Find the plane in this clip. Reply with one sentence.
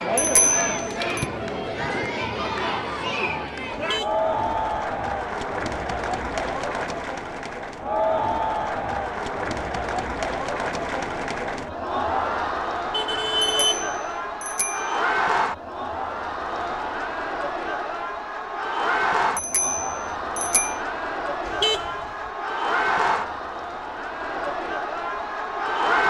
The plane can't be heard in this clip.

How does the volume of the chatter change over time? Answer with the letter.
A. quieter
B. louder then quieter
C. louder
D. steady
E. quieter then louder
D.